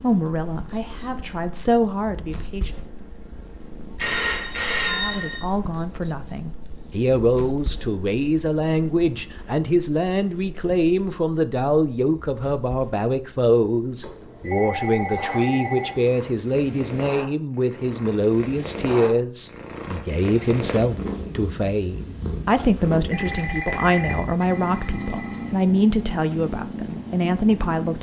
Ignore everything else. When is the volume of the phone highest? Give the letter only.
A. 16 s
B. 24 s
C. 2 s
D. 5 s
D.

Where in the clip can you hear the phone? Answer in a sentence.
You can hear the phone from 4.0 to 5.5 s, from 14.0 to 16.0 s and from 23.1 to 25.5 s.